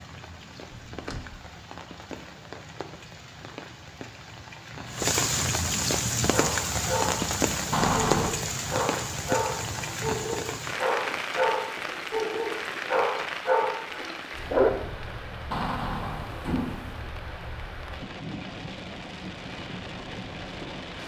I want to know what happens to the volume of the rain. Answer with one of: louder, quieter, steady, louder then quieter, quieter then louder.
louder then quieter.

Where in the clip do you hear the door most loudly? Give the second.
8 s.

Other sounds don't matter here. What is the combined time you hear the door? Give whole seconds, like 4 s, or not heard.
3 s.